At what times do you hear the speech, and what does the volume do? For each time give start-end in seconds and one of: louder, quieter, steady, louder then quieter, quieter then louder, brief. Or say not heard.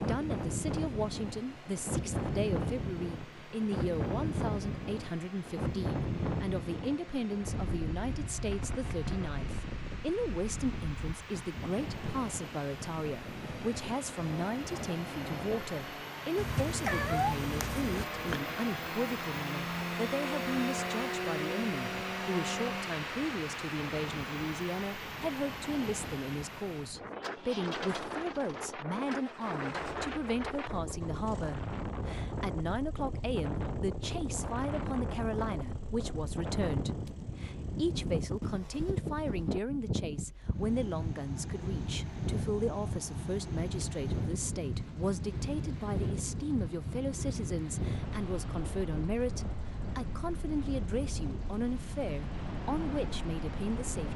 0.0-54.1 steady.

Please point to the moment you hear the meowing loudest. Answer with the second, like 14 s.
17 s.